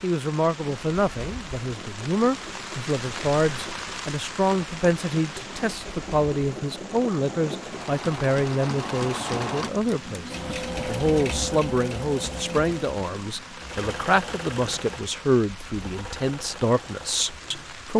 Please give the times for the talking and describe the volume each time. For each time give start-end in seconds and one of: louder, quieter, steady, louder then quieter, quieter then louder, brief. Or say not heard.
0.0-17.9 steady.